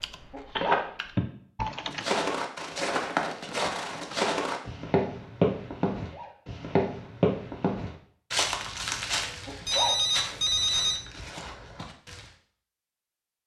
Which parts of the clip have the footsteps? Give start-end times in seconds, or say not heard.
1.9-12.2.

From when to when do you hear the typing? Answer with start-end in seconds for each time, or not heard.
0.0-2.0.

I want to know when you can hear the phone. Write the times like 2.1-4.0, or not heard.
0.6-1.2, 9.7-11.0.